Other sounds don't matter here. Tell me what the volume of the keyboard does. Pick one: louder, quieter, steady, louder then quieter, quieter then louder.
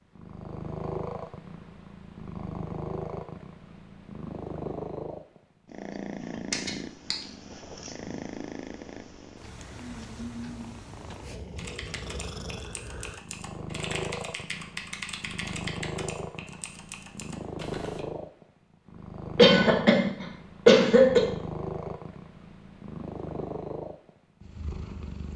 louder then quieter.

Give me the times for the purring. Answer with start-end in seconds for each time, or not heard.
0.1-25.3.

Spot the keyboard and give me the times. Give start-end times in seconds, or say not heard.
11.6-18.1.